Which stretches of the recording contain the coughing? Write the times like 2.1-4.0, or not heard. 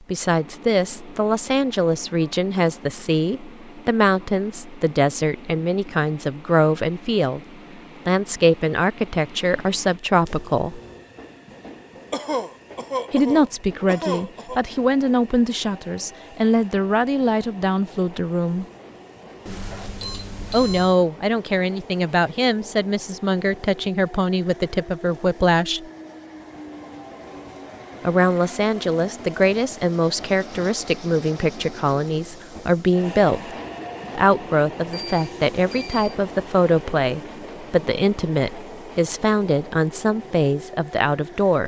12.1-14.6.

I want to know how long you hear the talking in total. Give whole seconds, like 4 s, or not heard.
34 s.